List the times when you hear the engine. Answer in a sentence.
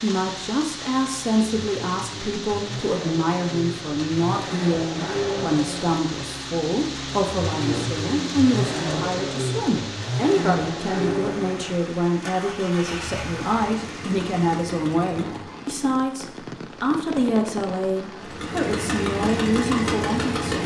The engine can be heard from 0.1 to 15.4 s and from 18.2 to 20.6 s.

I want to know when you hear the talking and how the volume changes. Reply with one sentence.
You can hear the talking from 0.0 to 20.6 s, at a steady volume.